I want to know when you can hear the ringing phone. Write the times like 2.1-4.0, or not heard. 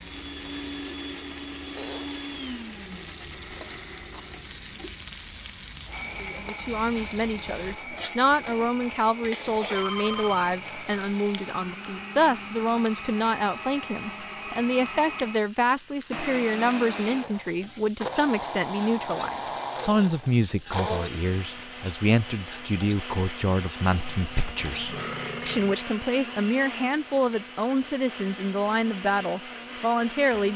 9.7-10.5.